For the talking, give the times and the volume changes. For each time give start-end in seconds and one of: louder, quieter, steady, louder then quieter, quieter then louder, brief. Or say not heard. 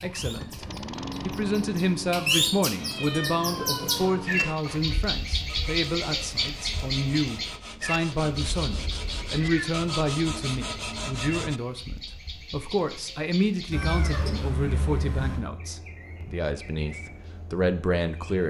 0.0-18.4 steady.